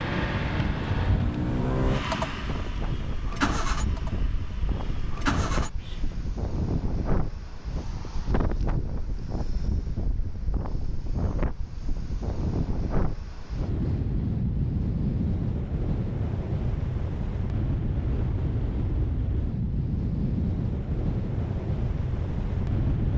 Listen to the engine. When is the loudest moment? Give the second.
2 s.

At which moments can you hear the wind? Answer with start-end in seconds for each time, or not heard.
0.0-23.1.